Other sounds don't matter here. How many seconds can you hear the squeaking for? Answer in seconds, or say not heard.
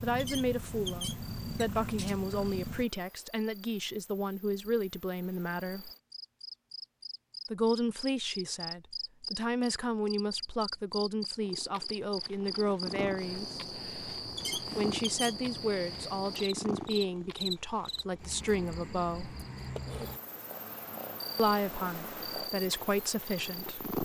3 s.